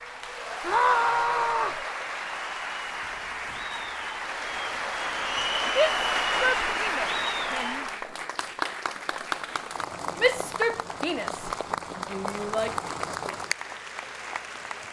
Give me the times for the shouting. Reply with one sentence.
You can hear the shouting from 0.6 to 1.8 s, from 5.8 to 7.8 s, from 10.2 to 11.5 s and from 12.1 to 12.7 s.